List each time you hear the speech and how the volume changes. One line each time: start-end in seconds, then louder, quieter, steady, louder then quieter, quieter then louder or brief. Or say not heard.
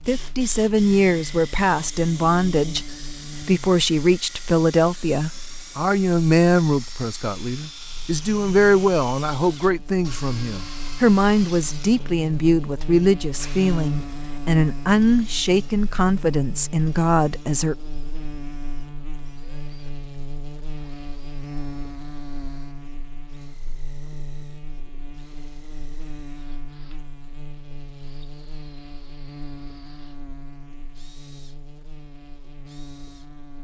0.1-17.8 steady.